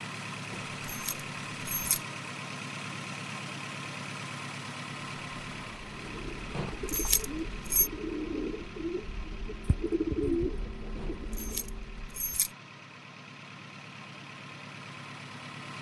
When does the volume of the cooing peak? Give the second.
10 s.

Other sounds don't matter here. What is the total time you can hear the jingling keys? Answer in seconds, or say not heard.
4 s.